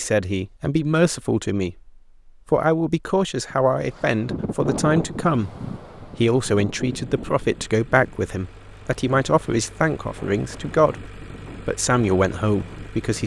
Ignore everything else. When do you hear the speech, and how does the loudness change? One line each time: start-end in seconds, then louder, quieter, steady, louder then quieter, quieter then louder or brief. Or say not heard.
0.0-13.2 steady.